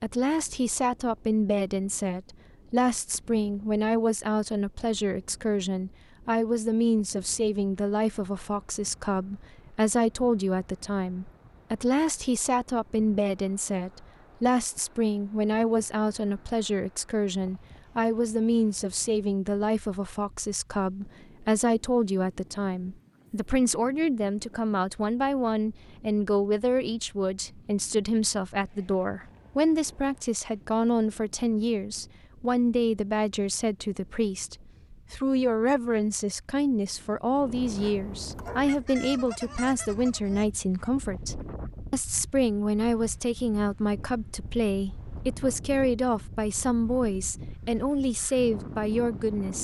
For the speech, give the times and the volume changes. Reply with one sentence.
You can hear the speech from 0.0 to 49.5 s, at a steady volume.